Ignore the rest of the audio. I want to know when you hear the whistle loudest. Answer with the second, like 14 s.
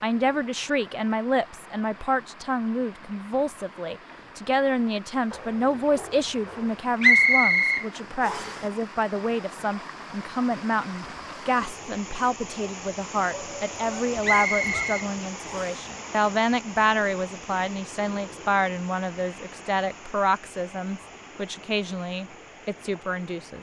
7 s.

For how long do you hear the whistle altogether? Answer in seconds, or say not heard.
3 s.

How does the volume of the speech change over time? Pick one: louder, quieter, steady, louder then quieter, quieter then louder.
steady.